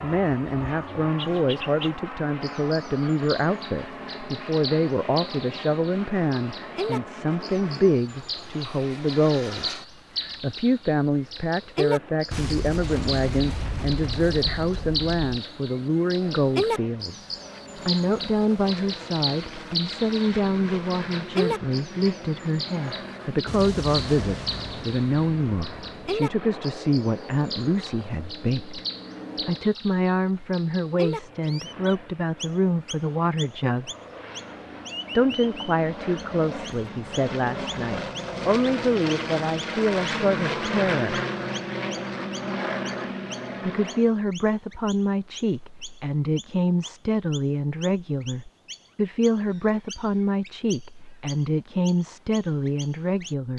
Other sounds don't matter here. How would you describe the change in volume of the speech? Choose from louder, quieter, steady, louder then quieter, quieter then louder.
steady.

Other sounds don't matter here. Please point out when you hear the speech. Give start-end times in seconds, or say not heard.
0.0-28.8, 29.4-33.9, 35.1-41.2, 43.6-53.5.